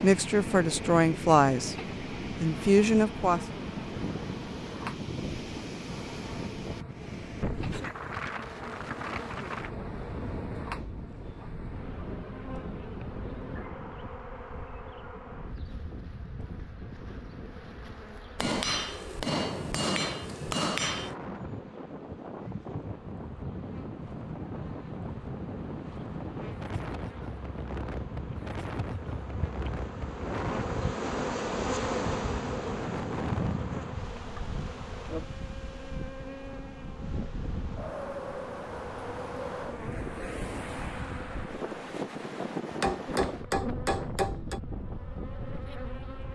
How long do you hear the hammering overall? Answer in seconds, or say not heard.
5 s.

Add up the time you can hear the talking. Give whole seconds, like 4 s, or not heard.
3 s.